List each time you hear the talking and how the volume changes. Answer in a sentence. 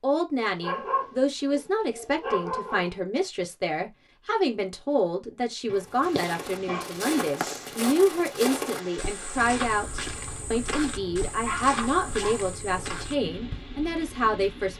You can hear the talking from 0.0 to 14.7 s, at a steady volume.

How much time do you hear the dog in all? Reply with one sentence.
You can hear the dog for 5 seconds altogether.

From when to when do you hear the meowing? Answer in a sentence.
You can't hear the meowing here.